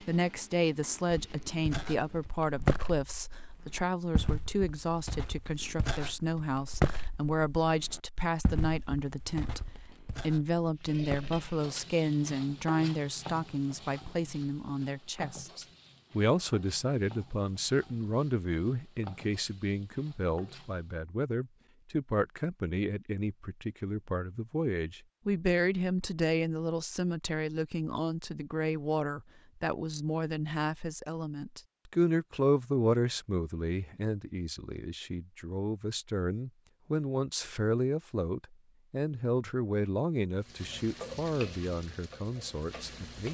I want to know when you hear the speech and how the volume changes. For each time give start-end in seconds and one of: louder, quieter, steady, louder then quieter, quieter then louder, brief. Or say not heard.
0.0-43.2 steady.